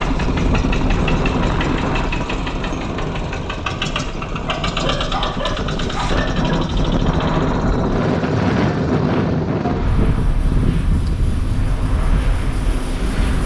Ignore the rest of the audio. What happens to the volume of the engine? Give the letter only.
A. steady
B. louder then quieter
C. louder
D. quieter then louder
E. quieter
E.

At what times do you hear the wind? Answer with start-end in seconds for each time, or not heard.
0.0-13.4.